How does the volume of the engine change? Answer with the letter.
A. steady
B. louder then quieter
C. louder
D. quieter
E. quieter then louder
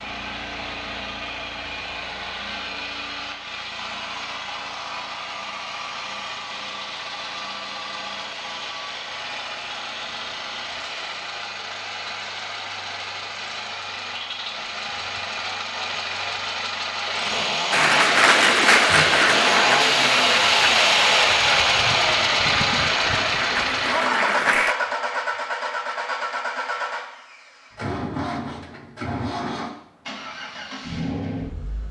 B.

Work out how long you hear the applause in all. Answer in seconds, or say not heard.
7 s.